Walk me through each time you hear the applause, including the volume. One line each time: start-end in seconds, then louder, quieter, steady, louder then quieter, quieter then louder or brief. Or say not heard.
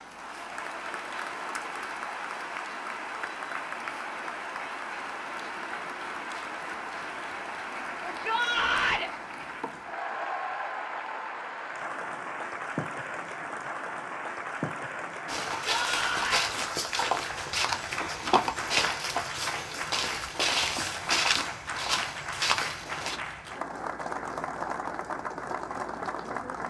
0.0-26.6 steady.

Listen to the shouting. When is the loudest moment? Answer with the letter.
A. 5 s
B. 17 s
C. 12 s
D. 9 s
D.